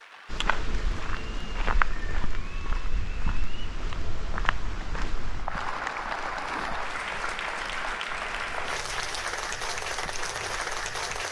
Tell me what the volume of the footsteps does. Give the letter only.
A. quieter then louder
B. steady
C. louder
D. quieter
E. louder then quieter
D.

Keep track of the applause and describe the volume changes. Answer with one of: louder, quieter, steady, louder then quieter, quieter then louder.
louder.